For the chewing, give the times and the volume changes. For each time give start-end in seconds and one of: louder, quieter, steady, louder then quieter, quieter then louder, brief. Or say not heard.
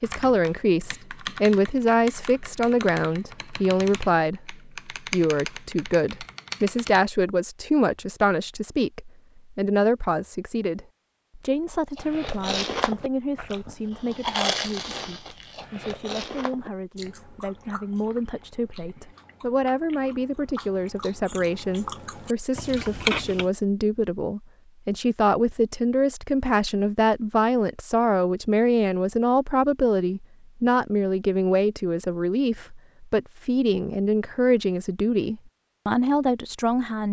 11.9-23.5 quieter then louder.